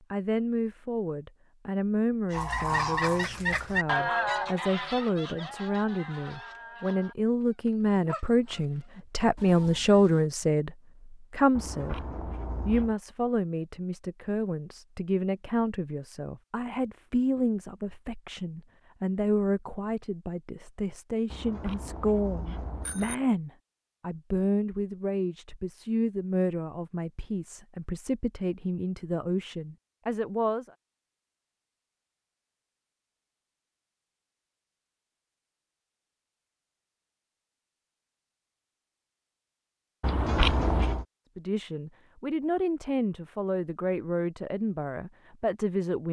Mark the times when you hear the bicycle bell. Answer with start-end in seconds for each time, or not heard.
11.6-12.9, 21.3-23.1, 40.0-41.0.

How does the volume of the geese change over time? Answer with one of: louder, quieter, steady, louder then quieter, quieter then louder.
quieter.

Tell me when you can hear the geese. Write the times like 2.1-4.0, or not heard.
2.3-10.3.